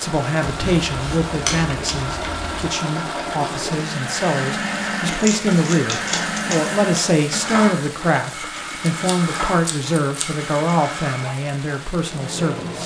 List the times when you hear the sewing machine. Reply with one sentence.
The sewing machine can be heard from 0.0 to 12.8 s.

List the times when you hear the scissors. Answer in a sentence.
You can hear the scissors from 0.4 to 2.7 s, from 5.0 to 7.0 s and from 8.8 to 10.5 s.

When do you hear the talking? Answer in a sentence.
You can hear the talking from 0.0 to 12.8 s.